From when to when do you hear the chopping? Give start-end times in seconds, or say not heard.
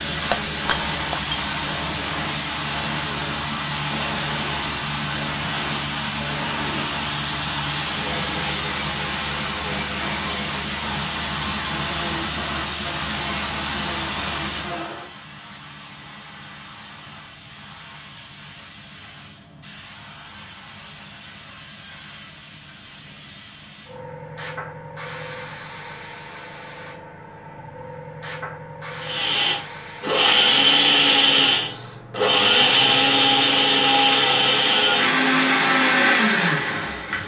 not heard.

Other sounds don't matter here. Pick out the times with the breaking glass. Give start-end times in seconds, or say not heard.
0.3-1.4.